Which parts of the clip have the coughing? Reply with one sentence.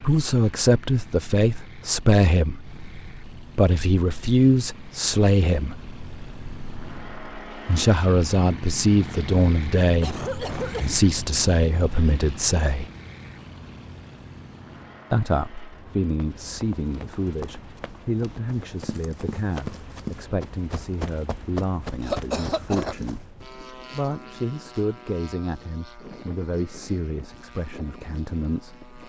You can hear the coughing from 9.8 to 10.9 s and from 22.0 to 23.1 s.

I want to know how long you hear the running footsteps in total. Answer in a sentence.
The running footsteps can be heard for 7 seconds in total.